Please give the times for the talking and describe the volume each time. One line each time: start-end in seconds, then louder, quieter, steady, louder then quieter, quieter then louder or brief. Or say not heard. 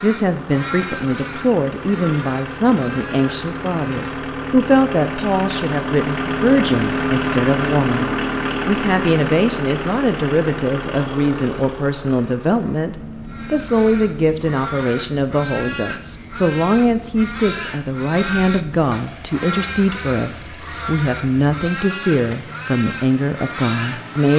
0.0-24.3 steady.